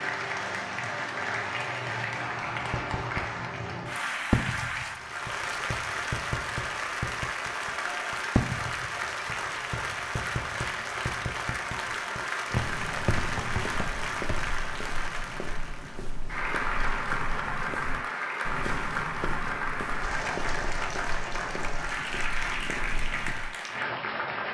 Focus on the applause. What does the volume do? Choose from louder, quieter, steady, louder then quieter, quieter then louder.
steady.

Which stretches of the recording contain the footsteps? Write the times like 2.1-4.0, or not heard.
12.5-23.5.